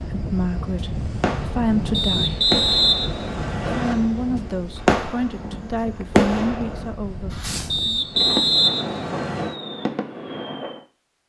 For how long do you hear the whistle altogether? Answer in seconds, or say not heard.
4 s.